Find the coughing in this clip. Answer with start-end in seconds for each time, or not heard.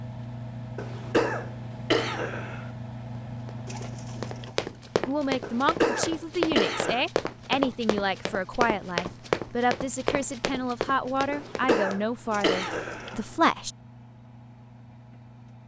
0.8-2.6, 5.4-7.0, 11.3-13.2.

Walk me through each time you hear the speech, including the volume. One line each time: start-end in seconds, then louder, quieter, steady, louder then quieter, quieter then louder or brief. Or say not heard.
5.0-13.7 steady.